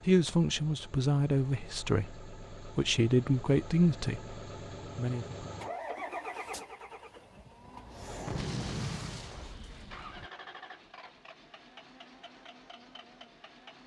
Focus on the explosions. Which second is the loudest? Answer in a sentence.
The volume of the explosions peaks at 9 seconds.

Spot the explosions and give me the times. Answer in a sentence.
The explosions can be heard from 8.2 to 10.3 s.